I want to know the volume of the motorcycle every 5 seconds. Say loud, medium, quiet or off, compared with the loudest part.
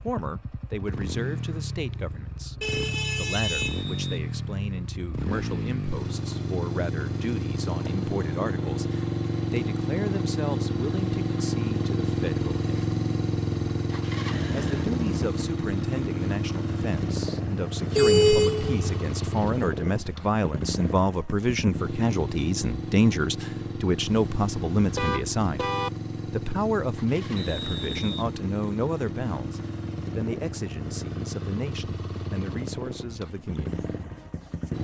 medium, loud, loud, loud, medium, medium, medium.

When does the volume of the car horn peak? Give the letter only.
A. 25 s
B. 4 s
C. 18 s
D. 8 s
C.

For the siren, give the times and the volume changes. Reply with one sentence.
The siren can't be heard in this clip.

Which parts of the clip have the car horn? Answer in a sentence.
You can hear the car horn from 2.6 to 3.9 s, from 17.9 to 19.0 s and from 24.1 to 25.9 s.